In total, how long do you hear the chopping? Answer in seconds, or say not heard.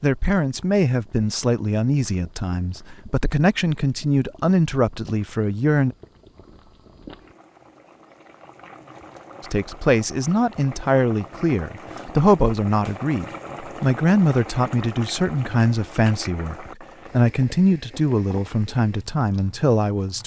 not heard.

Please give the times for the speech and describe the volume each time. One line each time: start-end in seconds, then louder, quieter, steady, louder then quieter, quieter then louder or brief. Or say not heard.
0.0-6.0 steady
9.4-20.2 steady.